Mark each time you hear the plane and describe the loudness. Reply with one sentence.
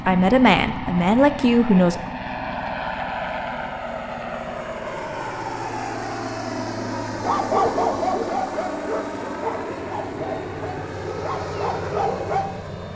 You can hear the plane from 0.0 to 12.9 s, at a steady volume.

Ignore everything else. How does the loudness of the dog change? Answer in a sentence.
The loudness of the dog goes down, then up.